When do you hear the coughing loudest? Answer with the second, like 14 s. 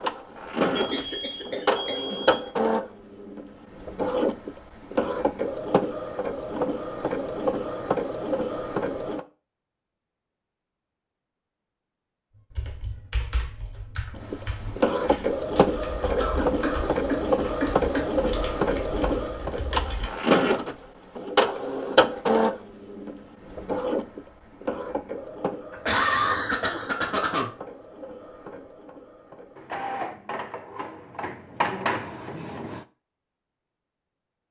26 s.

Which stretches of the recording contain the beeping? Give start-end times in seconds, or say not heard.
0.8-2.4.